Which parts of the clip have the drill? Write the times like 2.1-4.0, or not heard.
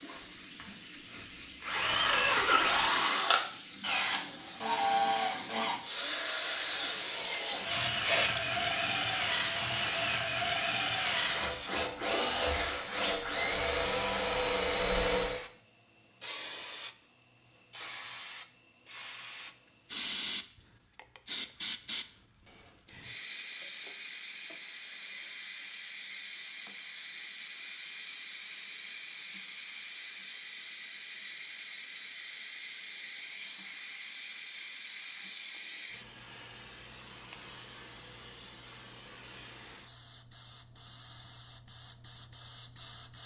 0.0-15.4.